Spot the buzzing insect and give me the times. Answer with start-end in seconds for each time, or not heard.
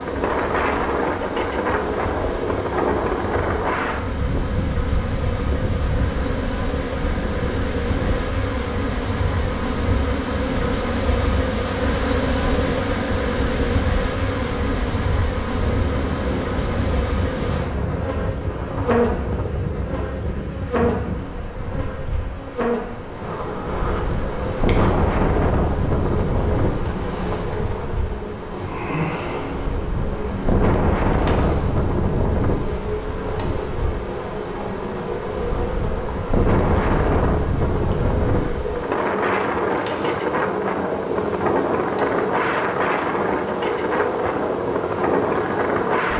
0.0-46.1.